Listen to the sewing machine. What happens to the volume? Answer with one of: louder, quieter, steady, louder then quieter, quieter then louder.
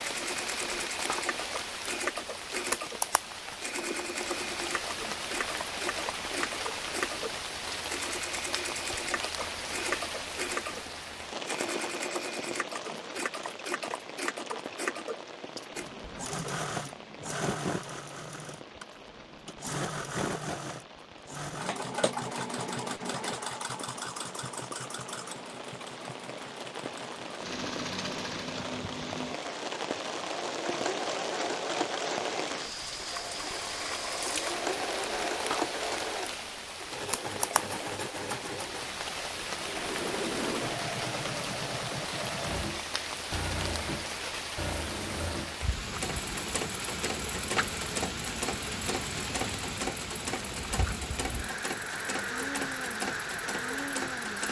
steady.